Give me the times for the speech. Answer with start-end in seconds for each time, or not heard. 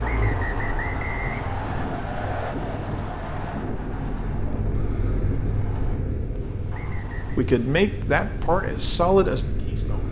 7.2-10.0.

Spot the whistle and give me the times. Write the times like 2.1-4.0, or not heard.
0.0-2.0, 6.7-7.5.